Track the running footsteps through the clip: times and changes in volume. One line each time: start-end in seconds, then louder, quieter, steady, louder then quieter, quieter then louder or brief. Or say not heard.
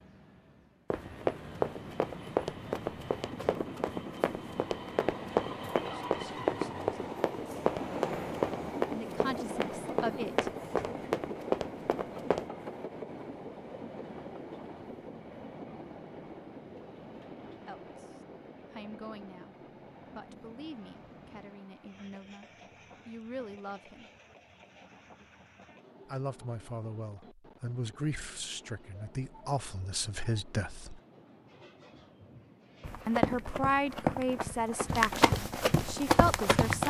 0.9-12.4 steady
32.8-36.8 steady.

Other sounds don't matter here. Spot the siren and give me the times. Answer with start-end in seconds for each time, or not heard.
not heard.